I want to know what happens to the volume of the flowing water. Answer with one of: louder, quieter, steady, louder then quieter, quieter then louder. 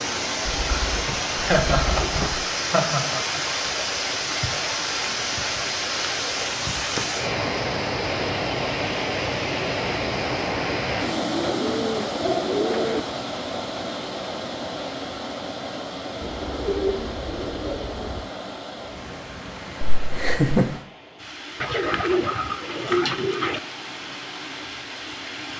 quieter.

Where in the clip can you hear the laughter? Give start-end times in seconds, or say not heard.
1.4-3.4, 19.9-20.6.